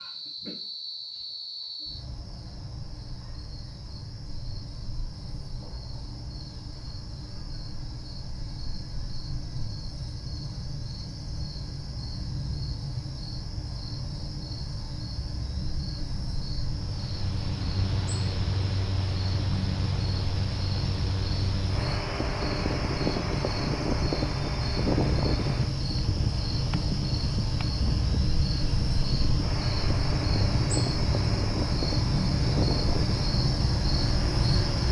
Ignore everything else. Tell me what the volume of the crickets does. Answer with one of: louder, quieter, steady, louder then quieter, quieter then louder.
louder.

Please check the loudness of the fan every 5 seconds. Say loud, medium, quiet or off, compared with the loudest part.
off, off, off, medium, loud, loud, loud.